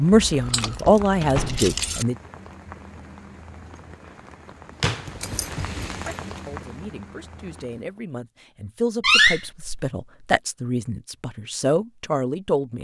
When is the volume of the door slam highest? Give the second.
9 s.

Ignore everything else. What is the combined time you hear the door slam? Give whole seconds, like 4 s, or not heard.
2 s.